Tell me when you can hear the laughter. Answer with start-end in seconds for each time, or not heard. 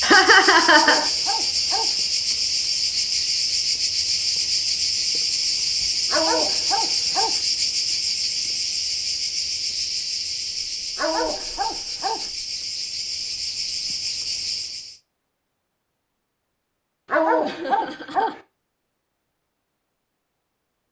0.0-1.1, 17.4-18.4.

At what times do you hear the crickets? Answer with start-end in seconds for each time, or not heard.
0.0-14.9.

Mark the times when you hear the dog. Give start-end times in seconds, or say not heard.
0.7-1.9, 6.1-7.4, 10.9-12.3, 17.1-18.4.